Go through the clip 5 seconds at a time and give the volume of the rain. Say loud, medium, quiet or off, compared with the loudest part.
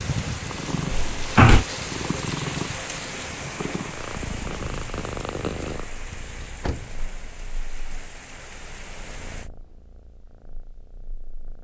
loud, medium, off.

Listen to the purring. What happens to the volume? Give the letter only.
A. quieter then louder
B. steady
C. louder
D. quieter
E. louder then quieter
D.